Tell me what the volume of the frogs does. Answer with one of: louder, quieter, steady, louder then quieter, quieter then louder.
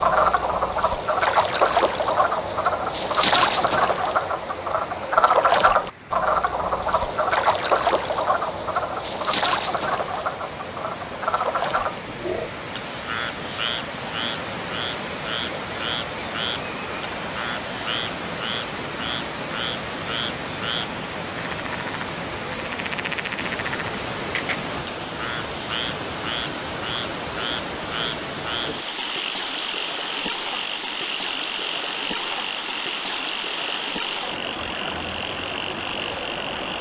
quieter.